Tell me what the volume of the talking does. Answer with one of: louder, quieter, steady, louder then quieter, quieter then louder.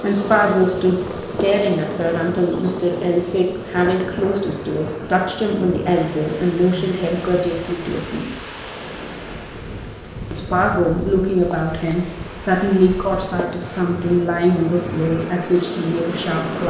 steady.